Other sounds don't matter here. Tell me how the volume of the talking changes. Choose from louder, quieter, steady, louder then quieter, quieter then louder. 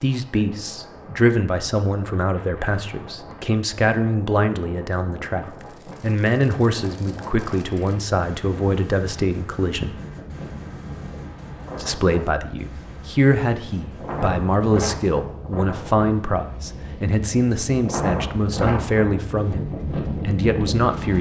steady.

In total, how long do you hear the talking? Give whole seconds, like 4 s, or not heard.
19 s.